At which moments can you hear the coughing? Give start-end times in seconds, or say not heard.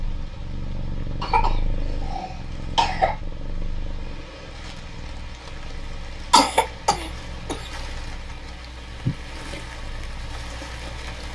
1.2-3.1, 6.3-7.6.